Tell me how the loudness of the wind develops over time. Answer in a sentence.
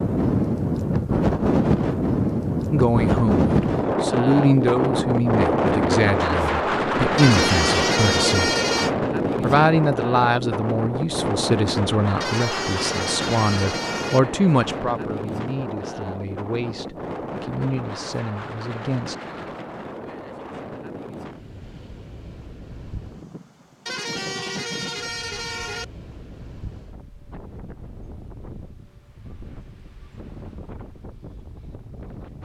The volume of the wind goes down.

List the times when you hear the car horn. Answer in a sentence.
You can hear the car horn from 7.2 to 8.9 s, from 12.2 to 14.2 s and from 23.9 to 25.9 s.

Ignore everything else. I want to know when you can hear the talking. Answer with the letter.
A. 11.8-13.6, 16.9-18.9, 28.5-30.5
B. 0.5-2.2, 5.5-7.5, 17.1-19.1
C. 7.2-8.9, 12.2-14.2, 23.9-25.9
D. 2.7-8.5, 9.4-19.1
D.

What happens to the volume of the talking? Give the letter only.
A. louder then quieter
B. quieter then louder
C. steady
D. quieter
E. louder
D.